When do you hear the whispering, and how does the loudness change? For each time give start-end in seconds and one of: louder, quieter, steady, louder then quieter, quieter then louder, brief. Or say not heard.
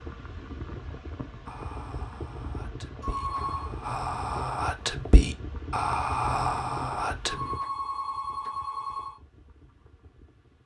1.4-7.5 louder.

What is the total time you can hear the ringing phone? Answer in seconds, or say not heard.
3 s.